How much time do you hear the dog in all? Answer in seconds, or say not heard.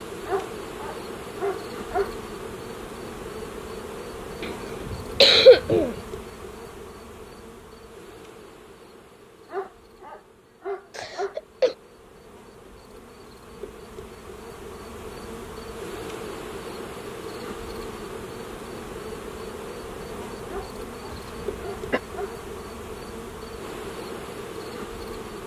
6 s.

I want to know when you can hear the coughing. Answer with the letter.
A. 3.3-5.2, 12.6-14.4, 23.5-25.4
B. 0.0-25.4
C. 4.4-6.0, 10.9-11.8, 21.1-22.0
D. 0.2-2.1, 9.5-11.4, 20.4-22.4
C.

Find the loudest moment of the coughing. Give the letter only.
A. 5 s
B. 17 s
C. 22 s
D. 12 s
A.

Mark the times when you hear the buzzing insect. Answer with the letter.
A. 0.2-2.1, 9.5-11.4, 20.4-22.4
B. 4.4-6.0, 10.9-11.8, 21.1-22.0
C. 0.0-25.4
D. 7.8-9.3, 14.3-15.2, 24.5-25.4
C.